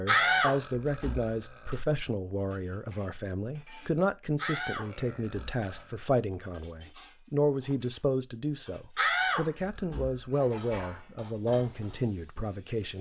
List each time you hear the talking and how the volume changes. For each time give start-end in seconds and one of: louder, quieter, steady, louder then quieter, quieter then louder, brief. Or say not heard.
0.0-12.9 steady.